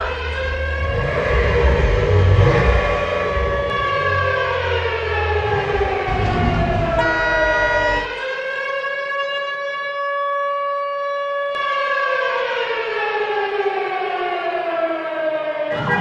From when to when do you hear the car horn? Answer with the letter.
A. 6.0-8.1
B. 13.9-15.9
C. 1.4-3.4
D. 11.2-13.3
A.